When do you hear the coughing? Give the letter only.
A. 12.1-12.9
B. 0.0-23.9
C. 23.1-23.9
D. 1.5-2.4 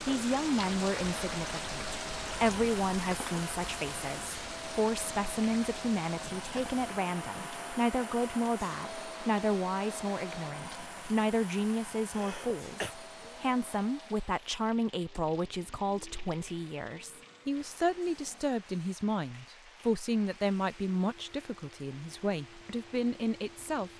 A.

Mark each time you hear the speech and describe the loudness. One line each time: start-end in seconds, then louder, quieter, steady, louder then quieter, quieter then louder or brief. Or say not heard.
0.0-23.9 steady.